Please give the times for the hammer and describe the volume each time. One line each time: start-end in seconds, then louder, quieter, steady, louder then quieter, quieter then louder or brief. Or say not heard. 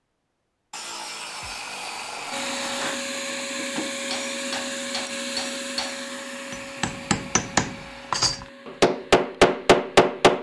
2.8-10.3 louder.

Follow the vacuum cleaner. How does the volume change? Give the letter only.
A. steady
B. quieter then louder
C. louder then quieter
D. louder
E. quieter
E.